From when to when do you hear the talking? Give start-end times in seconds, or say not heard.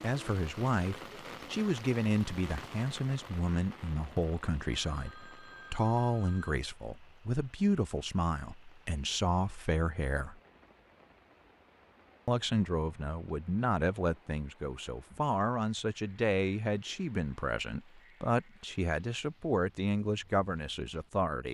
0.0-10.4, 12.2-21.4.